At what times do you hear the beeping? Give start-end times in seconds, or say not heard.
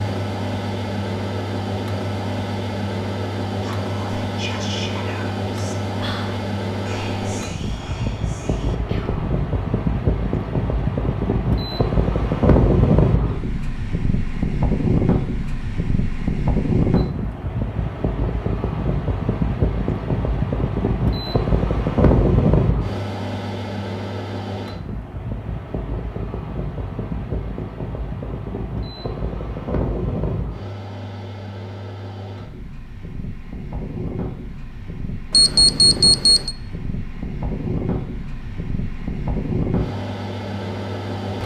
35.3-36.5.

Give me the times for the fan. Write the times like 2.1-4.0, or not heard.
0.0-41.4.